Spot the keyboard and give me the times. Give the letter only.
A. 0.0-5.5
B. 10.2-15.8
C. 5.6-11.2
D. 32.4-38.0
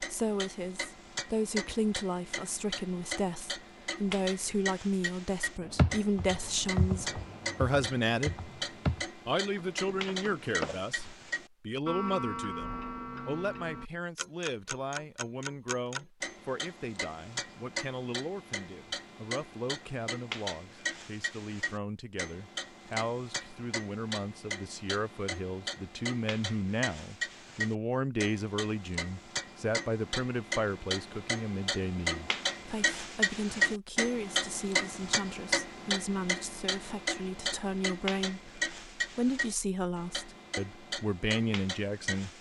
C.